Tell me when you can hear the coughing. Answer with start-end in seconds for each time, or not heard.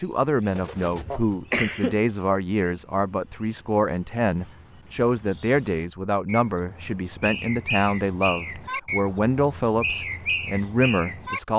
1.1-2.0.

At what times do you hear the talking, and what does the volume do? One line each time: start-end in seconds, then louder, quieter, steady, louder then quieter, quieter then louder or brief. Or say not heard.
0.0-11.5 steady.